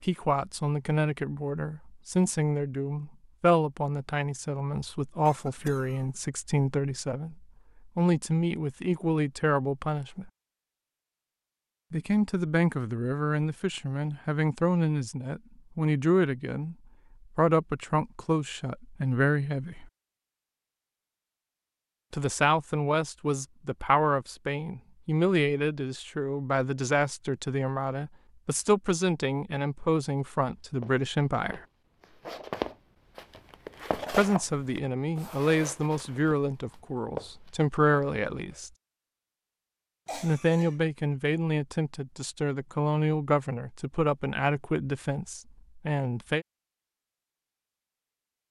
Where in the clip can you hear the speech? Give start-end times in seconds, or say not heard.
0.0-10.3, 11.9-16.8, 17.4-19.9, 22.1-31.6, 34.1-38.7, 40.1-46.5.